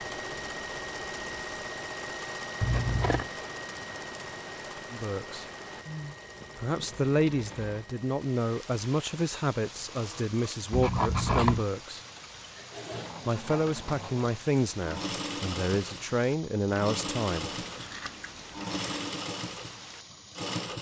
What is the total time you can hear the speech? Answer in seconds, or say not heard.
10 s.